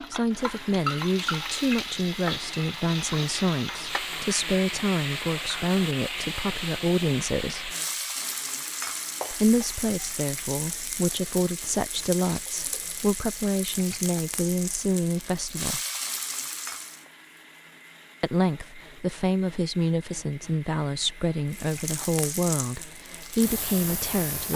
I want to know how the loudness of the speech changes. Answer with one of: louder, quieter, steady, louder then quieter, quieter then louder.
steady.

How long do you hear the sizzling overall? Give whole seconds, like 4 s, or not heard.
20 s.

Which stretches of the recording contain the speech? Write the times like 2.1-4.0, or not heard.
0.0-7.7, 9.3-15.8, 18.2-24.5.